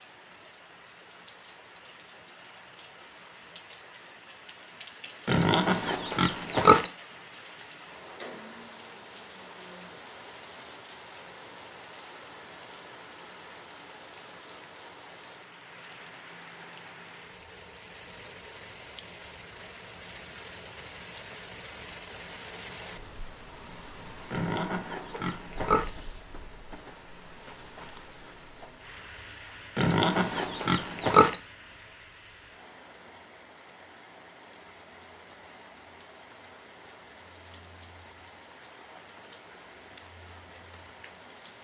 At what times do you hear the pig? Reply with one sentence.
The pig can be heard from 5.2 to 6.9 s, from 24.3 to 25.9 s and from 29.8 to 31.4 s.